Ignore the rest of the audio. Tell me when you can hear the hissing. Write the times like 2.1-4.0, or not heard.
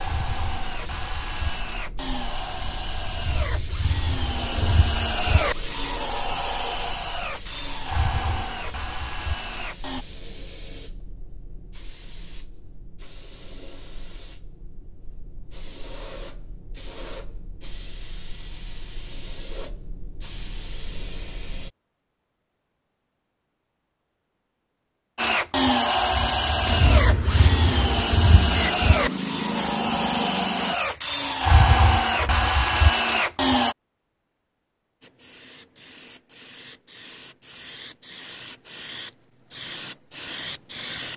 0.0-21.7, 26.6-30.8, 35.0-41.1.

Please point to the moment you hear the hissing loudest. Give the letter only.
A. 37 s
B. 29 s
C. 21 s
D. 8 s
B.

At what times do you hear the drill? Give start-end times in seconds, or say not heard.
0.0-10.1, 25.1-33.8.